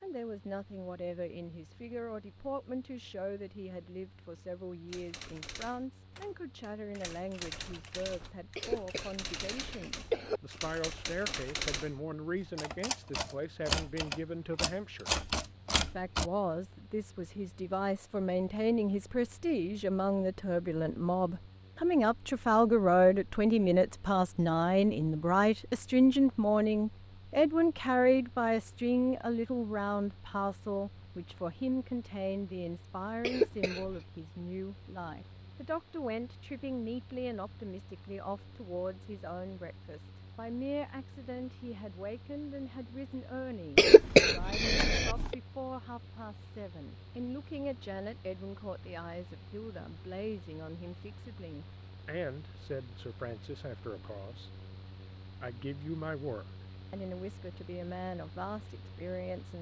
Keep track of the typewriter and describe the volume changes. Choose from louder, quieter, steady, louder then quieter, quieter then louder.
louder.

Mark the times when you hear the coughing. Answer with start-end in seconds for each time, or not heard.
8.6-10.4, 33.2-34.0, 43.8-45.4.